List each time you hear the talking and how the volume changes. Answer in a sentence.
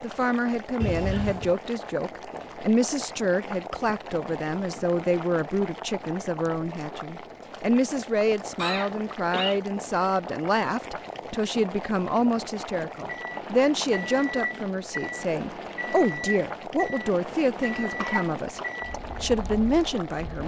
You can hear the talking from 0.0 to 20.4 s, at a steady volume.